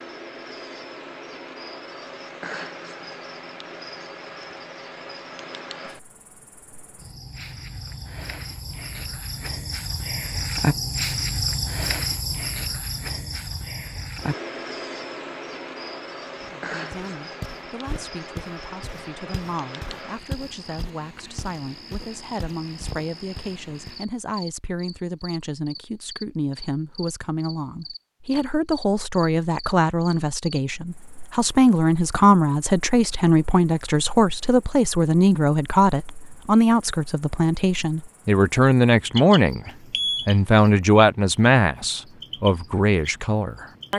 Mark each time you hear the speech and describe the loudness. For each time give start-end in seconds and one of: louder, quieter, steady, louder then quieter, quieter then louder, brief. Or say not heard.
16.4-43.9 louder.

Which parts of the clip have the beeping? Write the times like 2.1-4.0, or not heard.
39.6-40.3.